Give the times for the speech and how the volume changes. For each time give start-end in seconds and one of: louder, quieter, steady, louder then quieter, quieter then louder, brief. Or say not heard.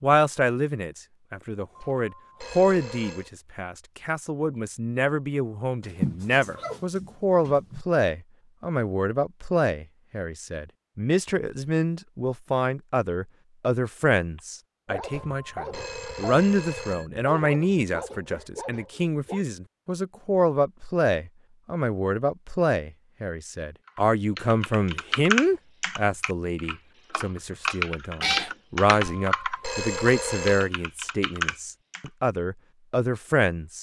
0.0-33.7 steady.